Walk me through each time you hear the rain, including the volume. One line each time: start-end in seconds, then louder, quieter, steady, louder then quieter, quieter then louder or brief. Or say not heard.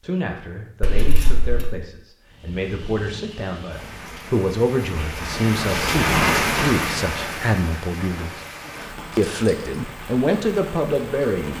2.2-11.5 louder then quieter.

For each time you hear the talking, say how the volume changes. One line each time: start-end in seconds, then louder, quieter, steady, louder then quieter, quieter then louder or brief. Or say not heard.
0.0-8.3 louder
9.2-11.5 brief.